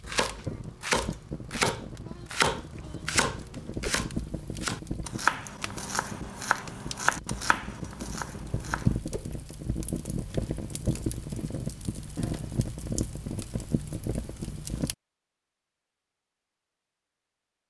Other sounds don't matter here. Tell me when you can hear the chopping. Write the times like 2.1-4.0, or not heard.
0.0-9.0.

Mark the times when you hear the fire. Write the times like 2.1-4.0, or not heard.
0.0-14.9.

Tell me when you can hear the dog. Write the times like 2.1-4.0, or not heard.
not heard.